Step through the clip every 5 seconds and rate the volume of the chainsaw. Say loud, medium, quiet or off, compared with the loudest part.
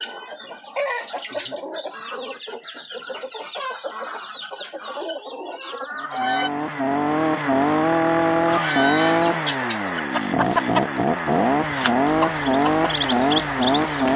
off, loud, loud.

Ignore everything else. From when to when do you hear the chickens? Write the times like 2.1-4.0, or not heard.
0.0-6.5, 8.4-14.1.